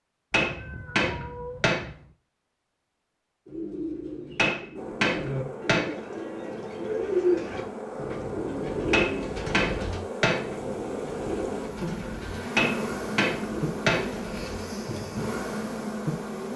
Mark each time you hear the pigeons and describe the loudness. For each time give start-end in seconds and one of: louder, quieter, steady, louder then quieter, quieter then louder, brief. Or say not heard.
3.5-15.3 louder then quieter.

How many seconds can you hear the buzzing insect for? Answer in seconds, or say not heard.
12 s.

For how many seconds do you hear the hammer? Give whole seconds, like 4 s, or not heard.
6 s.